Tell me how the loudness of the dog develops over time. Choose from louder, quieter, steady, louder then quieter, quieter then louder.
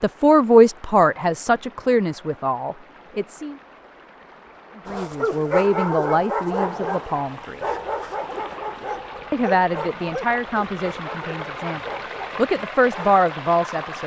quieter.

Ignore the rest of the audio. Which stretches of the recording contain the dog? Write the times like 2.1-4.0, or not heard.
4.8-13.2.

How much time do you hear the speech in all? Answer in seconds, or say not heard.
11 s.